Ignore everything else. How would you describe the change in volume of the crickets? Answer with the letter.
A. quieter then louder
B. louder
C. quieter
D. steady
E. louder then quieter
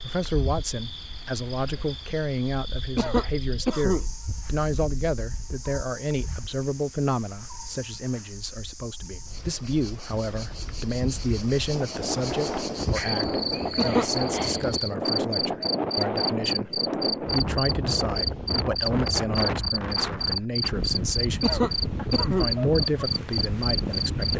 B.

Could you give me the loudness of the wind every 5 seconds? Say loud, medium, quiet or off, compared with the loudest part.
quiet, quiet, loud, loud, loud.